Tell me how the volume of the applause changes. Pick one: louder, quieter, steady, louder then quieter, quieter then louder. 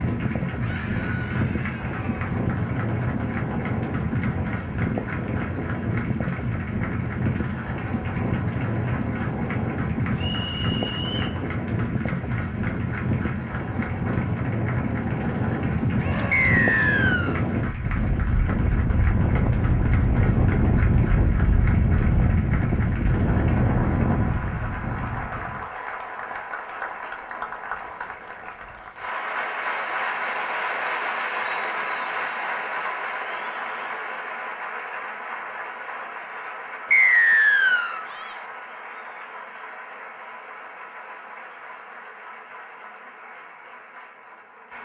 louder then quieter.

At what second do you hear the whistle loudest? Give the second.
37 s.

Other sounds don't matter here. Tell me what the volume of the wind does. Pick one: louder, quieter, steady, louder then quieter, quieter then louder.
steady.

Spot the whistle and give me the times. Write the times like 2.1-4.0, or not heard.
10.2-11.3, 16.3-17.4, 36.9-38.0.